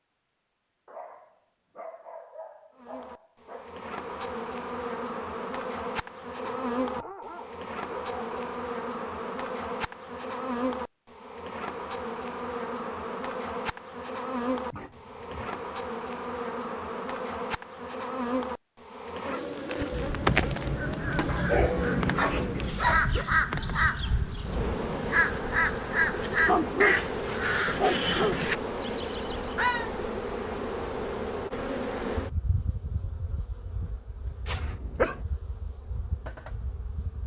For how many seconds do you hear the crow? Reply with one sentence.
You can hear the crow for 10 seconds altogether.